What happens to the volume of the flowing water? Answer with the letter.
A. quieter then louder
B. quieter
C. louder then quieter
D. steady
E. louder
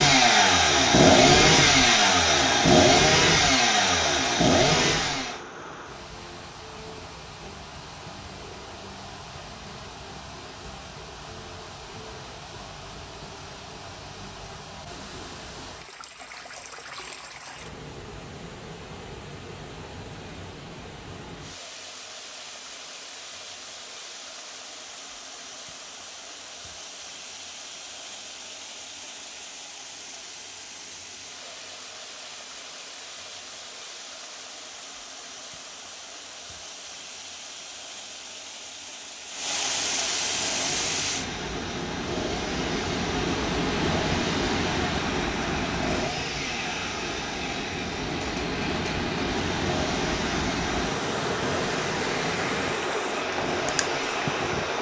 E.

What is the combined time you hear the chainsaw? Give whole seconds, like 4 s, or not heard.
20 s.